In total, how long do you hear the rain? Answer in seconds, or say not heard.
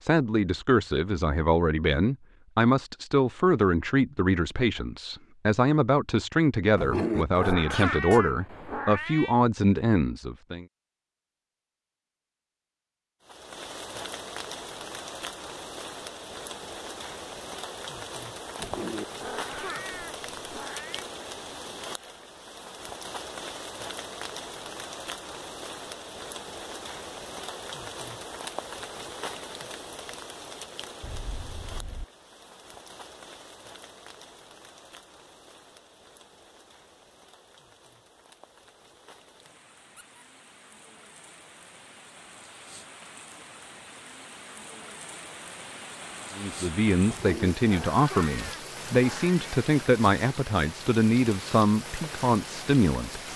40 s.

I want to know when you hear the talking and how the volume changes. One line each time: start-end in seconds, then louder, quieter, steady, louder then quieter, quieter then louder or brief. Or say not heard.
0.0-10.7 steady
46.4-53.2 steady.